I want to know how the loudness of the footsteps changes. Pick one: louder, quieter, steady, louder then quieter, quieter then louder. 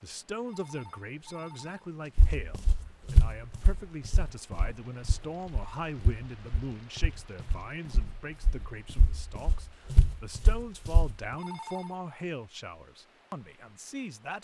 quieter then louder.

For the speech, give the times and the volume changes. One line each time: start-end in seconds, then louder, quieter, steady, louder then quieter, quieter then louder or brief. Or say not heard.
0.0-14.3 steady.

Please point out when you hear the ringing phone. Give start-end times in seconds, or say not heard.
0.5-2.3, 11.3-12.0.